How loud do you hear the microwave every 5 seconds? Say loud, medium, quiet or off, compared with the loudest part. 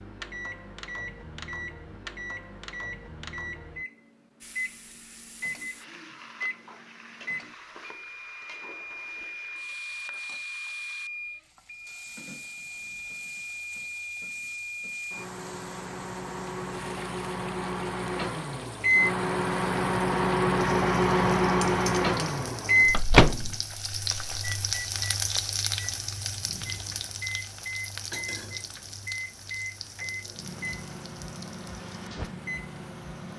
quiet, quiet, quiet, medium, loud, quiet, quiet.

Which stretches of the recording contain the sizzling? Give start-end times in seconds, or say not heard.
4.4-33.3.